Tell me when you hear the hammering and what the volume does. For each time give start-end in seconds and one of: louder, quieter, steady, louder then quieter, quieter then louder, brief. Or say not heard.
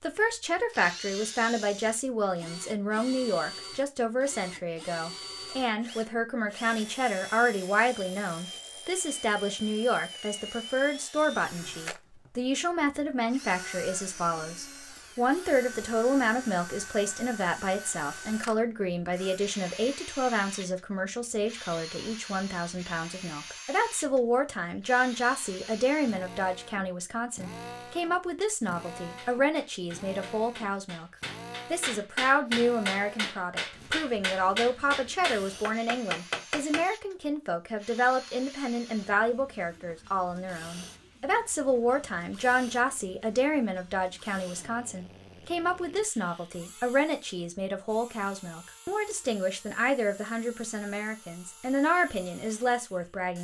28.9-36.9 louder.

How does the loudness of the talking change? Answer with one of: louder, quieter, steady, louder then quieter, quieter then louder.
steady.